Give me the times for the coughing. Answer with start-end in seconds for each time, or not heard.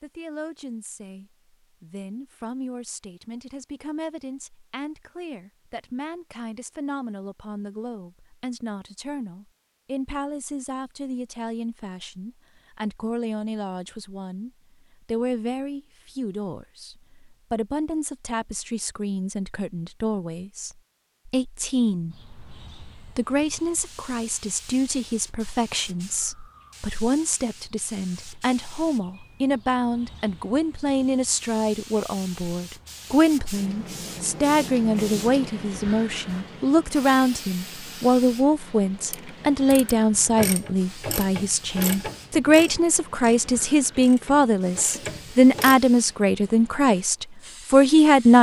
not heard.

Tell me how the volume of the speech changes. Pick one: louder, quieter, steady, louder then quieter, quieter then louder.
louder.